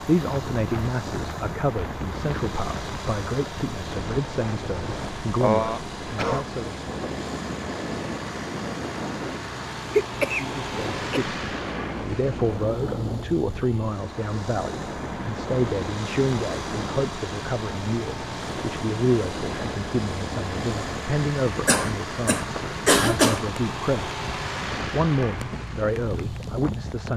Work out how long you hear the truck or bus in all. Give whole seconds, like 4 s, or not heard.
27 s.